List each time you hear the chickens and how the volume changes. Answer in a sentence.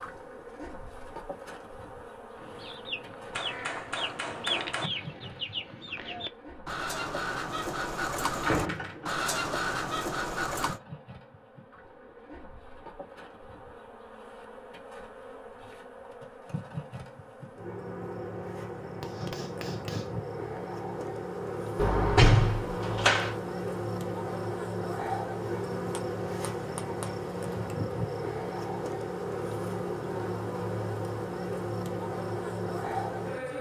The chickens can be heard from 2.4 to 10.8 s, getting louder.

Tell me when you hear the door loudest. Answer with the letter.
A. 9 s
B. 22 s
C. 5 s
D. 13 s
B.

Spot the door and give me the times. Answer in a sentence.
The door can be heard from 8.4 to 9.2 s and from 21.8 to 23.4 s.